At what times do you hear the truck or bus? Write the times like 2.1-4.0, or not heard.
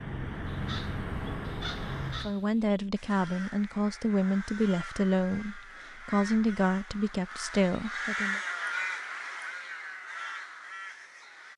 0.0-2.4.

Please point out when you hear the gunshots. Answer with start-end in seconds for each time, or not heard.
not heard.